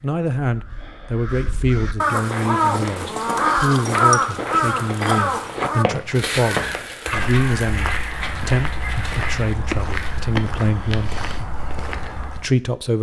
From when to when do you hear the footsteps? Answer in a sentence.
The footsteps can be heard from 2.1 to 12.5 s.